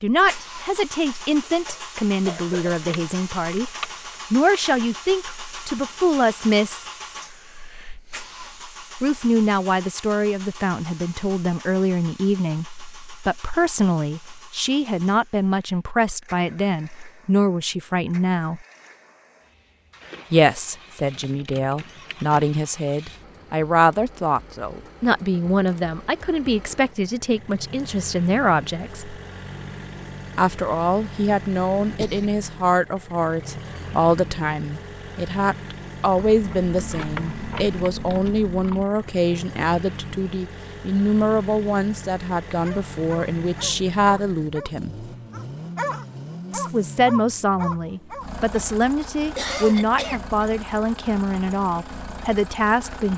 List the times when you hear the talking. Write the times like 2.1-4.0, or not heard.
0.0-3.6, 4.3-6.8, 9.0-18.6, 20.3-29.2, 30.4-45.0, 46.5-53.1.